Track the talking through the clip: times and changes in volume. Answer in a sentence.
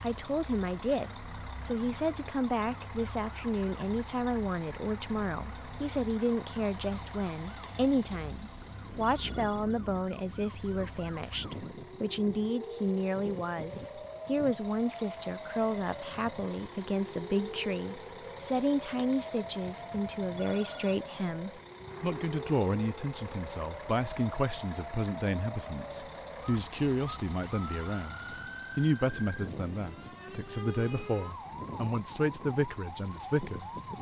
The talking can be heard from 0.0 to 33.7 s, at a steady volume.